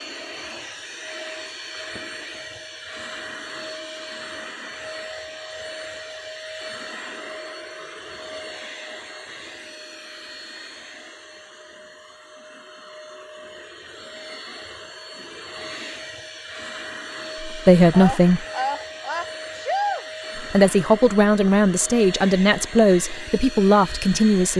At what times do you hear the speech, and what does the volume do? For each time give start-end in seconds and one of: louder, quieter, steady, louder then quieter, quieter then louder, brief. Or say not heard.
17.4-18.4 brief
20.4-24.5 steady.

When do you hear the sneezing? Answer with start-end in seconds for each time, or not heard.
17.5-20.1.